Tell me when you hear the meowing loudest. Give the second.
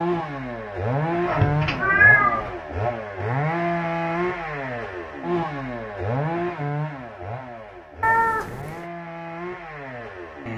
2 s.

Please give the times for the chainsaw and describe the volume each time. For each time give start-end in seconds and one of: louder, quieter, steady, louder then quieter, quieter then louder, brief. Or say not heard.
0.0-10.5 quieter.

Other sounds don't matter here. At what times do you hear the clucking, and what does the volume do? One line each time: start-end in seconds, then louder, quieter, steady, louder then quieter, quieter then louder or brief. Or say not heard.
not heard.